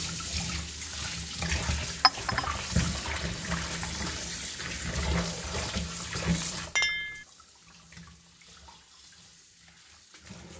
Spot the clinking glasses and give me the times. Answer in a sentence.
The clinking glasses can be heard from 2.0 to 2.5 s and from 6.8 to 7.2 s.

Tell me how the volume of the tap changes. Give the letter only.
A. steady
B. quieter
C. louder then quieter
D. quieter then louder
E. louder
B.